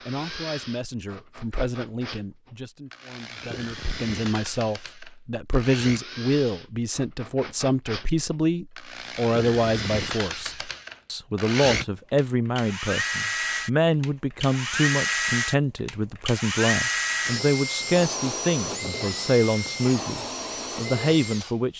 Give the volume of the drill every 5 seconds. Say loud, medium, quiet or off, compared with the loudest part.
medium, medium, loud, loud, medium.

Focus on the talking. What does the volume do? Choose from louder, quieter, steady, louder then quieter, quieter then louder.
louder.